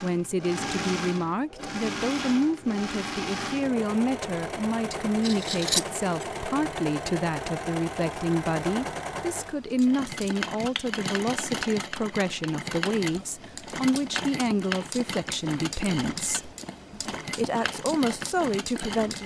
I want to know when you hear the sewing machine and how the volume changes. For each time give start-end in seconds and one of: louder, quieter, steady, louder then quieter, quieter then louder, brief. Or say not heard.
0.0-19.2 steady.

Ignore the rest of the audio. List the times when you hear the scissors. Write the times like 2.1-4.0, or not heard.
5.2-6.2.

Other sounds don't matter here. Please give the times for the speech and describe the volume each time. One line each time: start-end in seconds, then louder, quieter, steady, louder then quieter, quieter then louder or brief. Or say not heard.
0.0-19.2 steady.